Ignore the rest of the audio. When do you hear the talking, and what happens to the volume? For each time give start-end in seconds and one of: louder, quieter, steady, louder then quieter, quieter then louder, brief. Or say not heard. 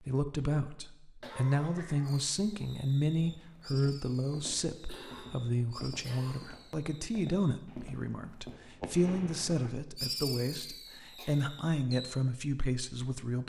0.0-13.4 steady.